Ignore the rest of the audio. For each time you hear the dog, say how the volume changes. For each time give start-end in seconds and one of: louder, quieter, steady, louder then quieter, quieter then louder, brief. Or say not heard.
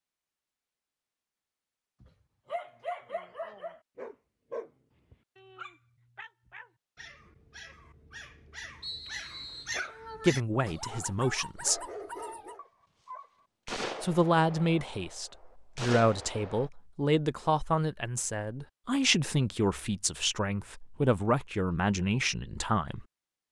2.0-12.6 quieter then louder.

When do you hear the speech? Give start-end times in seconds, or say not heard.
10.2-11.8, 14.0-23.1.